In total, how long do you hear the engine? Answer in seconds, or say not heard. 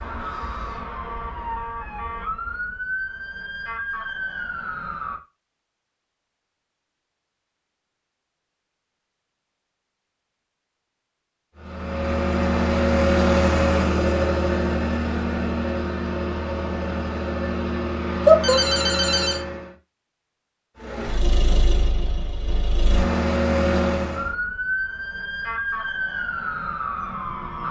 12 s.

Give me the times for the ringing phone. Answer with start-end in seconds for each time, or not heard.
18.2-19.4.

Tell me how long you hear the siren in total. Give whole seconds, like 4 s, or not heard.
9 s.